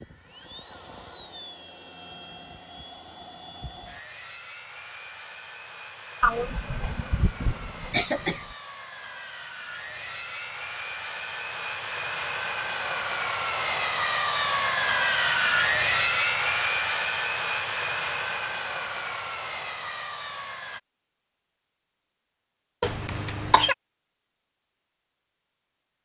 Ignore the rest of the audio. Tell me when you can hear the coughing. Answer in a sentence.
The coughing can be heard from 6.2 to 8.6 s and from 22.8 to 23.8 s.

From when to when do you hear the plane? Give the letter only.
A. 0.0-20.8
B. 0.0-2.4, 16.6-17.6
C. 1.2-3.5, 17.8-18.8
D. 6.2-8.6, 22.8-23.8
A.